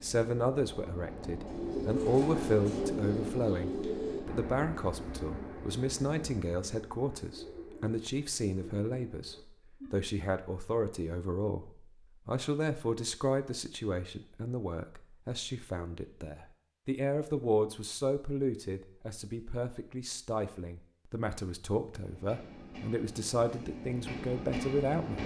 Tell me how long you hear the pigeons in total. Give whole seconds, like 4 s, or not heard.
9 s.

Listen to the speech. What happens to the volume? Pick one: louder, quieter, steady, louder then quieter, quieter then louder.
steady.